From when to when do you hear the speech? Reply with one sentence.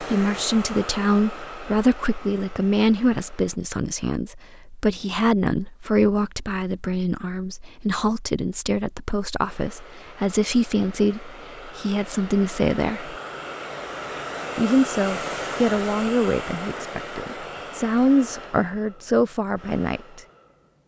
The speech can be heard from 0.0 to 13.2 s and from 14.6 to 20.2 s.